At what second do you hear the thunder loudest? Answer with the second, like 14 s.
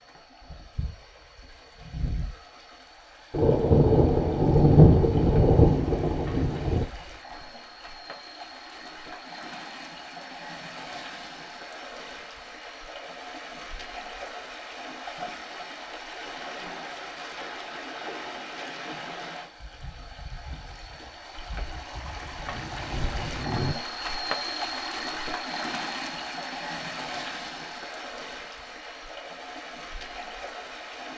5 s.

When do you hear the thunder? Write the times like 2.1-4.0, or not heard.
3.3-6.8, 21.9-23.8.